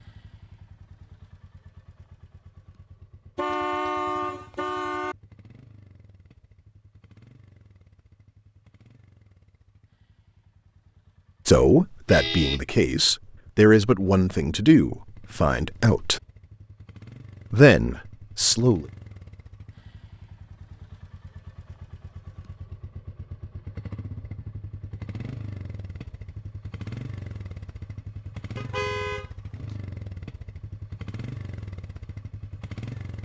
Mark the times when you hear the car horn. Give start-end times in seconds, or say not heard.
3.4-5.2, 12.1-12.6, 28.6-29.3.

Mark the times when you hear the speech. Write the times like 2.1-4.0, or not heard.
11.4-16.2, 17.5-18.9.